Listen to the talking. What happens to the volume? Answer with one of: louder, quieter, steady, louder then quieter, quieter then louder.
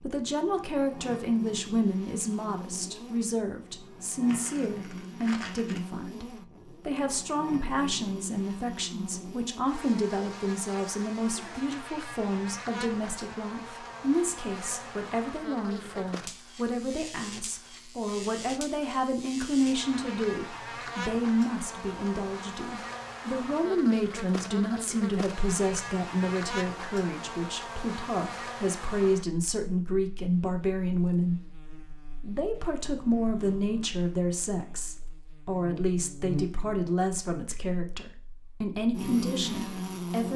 steady.